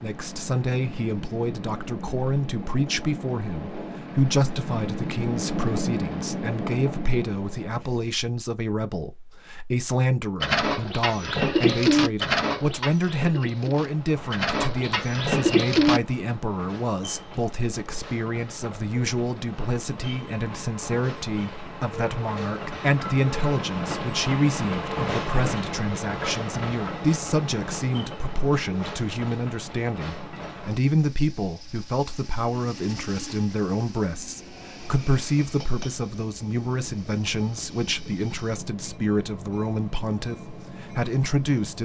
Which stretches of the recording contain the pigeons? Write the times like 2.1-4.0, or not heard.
10.4-16.0.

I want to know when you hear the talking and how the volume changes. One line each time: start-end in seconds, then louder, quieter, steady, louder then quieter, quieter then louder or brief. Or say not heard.
0.0-41.8 steady.